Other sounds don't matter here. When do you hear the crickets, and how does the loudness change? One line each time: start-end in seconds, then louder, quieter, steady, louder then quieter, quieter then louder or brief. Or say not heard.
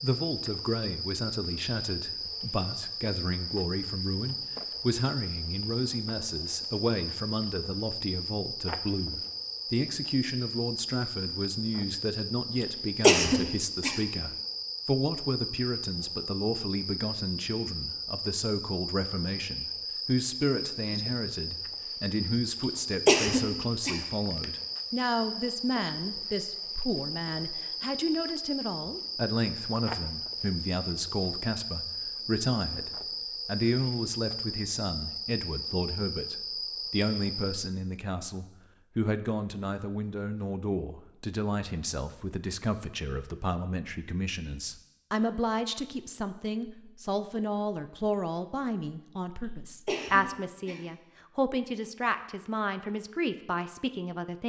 0.0-37.7 steady.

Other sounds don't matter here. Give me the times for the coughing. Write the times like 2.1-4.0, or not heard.
12.6-14.0, 22.6-24.4, 49.9-50.8.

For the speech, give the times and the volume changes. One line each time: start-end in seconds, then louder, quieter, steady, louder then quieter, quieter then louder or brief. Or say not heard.
0.0-54.4 steady.